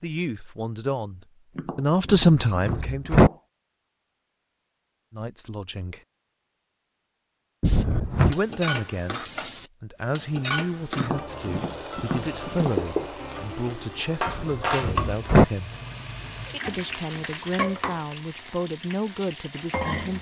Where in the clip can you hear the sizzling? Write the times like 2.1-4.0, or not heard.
7.7-20.1.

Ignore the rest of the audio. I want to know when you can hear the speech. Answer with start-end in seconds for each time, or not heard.
0.0-3.2, 5.1-6.0, 8.2-15.8, 16.6-20.1.